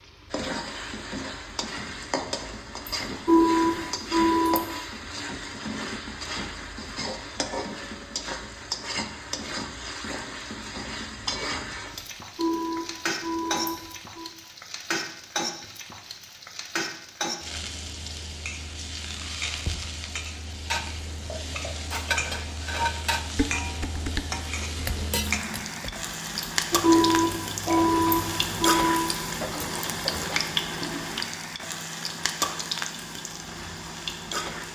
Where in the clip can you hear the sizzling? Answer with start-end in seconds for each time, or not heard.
0.0-34.6.